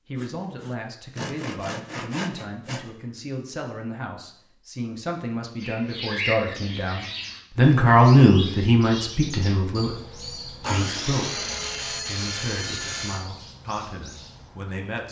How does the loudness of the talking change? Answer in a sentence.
The loudness of the talking goes up, then down.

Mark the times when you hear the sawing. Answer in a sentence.
You can hear the sawing from 0.1 to 2.9 s and from 10.6 to 13.2 s.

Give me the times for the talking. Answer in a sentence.
The talking can be heard from 0.1 to 15.0 s.